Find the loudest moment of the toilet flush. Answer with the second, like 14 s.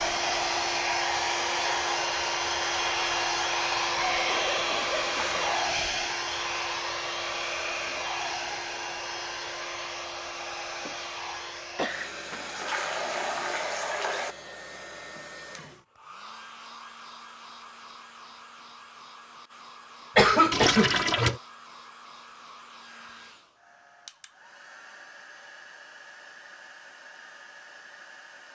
21 s.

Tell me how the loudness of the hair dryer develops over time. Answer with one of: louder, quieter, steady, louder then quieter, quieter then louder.
quieter.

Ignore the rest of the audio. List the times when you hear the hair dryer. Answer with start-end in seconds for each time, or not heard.
0.0-28.5.